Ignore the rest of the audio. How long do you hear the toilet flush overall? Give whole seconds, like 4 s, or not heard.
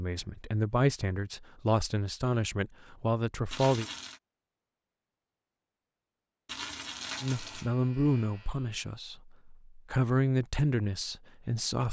2 s.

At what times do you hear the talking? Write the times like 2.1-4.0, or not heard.
0.0-3.9, 7.2-11.8.